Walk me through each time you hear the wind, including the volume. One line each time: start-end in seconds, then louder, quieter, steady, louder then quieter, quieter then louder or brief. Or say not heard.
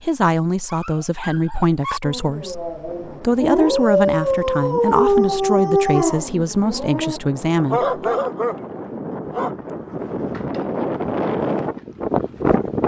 2.9-12.8 louder.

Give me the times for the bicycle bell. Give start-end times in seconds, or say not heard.
not heard.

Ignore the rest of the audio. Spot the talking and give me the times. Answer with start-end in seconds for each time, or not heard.
0.0-7.8.